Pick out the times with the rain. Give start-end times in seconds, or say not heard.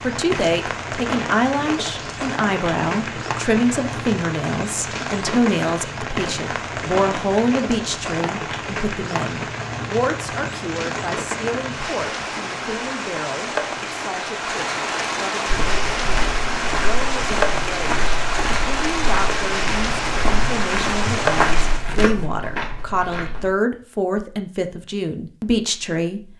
0.0-21.9.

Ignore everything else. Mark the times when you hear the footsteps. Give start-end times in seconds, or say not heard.
15.4-23.5.